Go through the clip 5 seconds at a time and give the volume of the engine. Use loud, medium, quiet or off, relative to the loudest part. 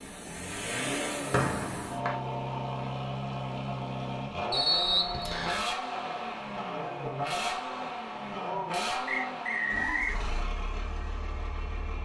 loud, loud, medium.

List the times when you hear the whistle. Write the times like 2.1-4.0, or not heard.
1.3-2.1, 4.5-5.7, 9.1-10.2.